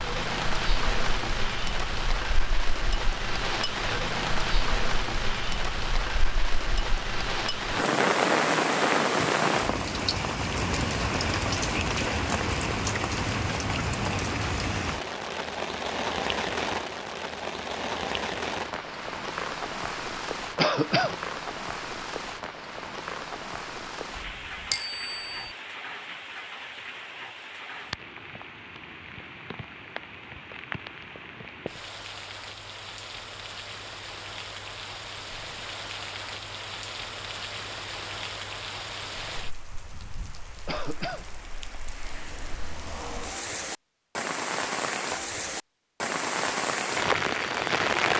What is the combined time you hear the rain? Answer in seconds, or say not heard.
48 s.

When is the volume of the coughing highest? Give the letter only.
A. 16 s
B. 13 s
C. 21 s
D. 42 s
C.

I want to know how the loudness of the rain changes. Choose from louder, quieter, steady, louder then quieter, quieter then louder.
quieter then louder.